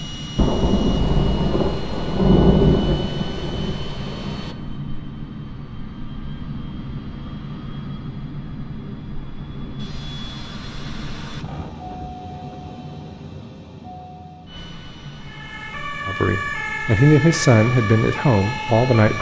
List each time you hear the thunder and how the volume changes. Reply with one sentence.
You can hear the thunder from 0.3 to 4.5 s, getting louder then quieter.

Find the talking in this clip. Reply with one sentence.
The talking can be heard from 16.1 to 19.1 s.